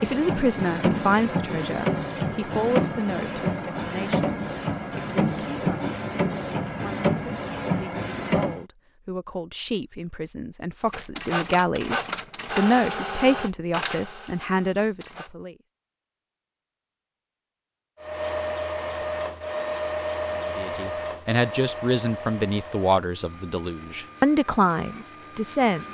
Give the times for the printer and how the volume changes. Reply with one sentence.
You can hear the printer from 0.0 to 8.7 s, at a steady volume; from 10.8 to 15.3 s, getting quieter; and from 18.0 to 25.8 s, getting quieter.